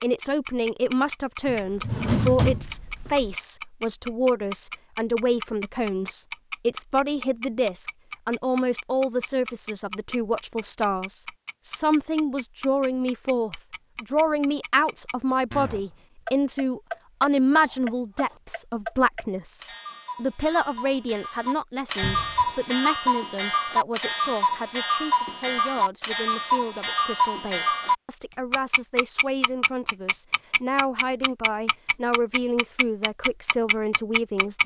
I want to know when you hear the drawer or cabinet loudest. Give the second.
2 s.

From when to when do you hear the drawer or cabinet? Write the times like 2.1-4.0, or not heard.
1.4-3.4, 22.0-22.6.